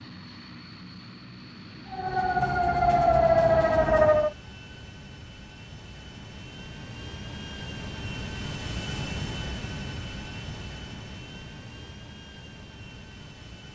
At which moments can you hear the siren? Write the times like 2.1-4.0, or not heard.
1.9-4.3.